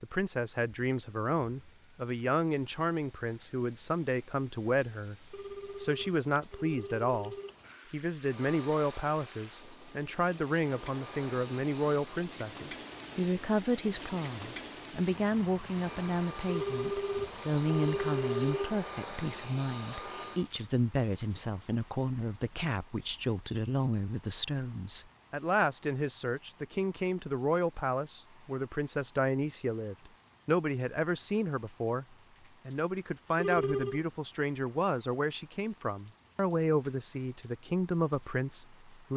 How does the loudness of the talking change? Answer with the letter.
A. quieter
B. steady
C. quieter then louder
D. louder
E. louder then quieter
B.